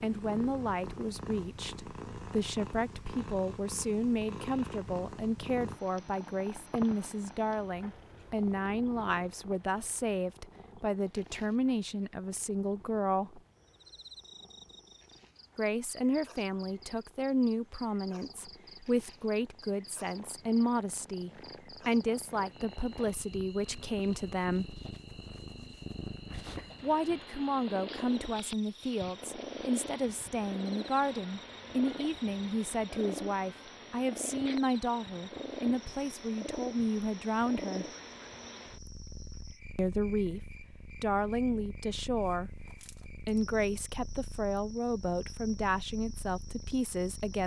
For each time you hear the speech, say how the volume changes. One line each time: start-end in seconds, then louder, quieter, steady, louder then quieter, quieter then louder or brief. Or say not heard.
0.0-13.4 steady
15.6-24.8 steady
26.8-37.9 steady
39.8-42.5 brief
43.1-47.4 steady.